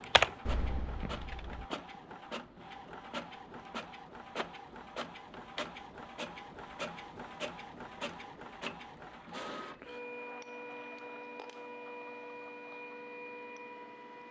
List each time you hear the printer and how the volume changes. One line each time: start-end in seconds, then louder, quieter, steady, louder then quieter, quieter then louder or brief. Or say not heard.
0.0-14.2 steady.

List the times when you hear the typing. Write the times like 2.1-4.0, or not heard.
0.0-1.7.